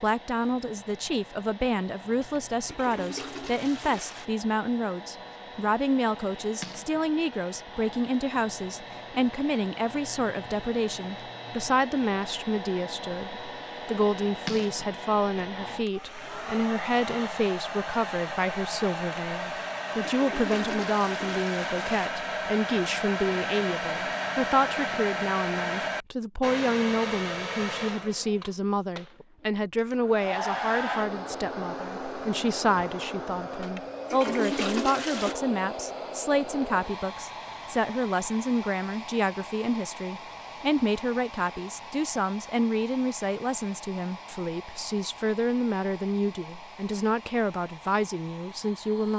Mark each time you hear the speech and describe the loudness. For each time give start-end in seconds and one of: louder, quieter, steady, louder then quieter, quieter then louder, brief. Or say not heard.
0.0-49.1 steady.